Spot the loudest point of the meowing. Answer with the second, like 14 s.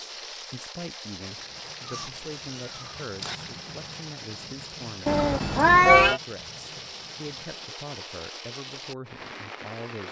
6 s.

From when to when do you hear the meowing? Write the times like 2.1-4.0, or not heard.
1.8-3.4, 5.0-6.2.